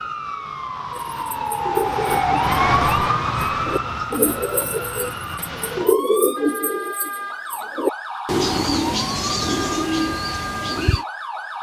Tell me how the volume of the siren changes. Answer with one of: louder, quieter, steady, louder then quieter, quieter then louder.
quieter.